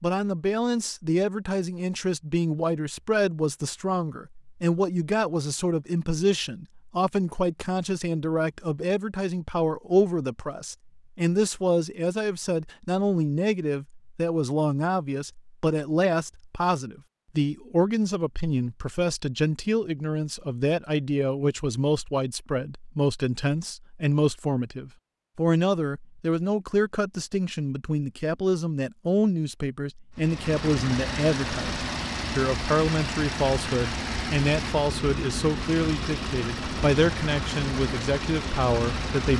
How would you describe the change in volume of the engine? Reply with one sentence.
The volume of the engine stays about the same.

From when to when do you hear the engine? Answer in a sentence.
You can hear the engine from 30.1 to 39.3 s.